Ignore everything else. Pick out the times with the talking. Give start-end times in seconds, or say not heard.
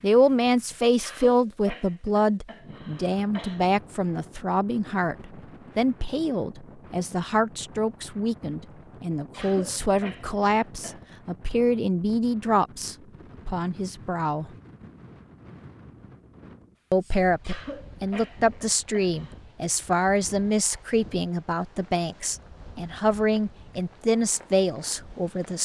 0.0-14.5, 16.9-25.6.